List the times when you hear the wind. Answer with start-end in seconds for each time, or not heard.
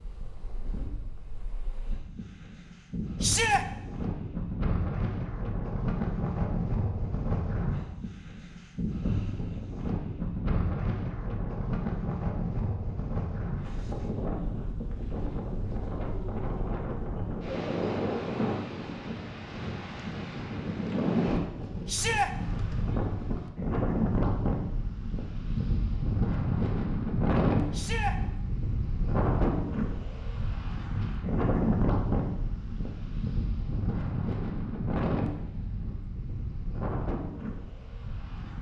0.0-38.5.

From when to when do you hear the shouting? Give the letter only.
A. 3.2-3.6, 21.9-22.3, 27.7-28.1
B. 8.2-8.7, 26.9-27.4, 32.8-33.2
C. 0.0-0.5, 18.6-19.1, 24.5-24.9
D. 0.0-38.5
A.